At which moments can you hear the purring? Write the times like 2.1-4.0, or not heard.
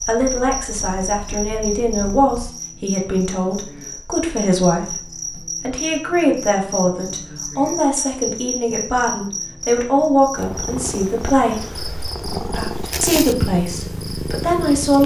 0.0-2.5, 10.3-15.0.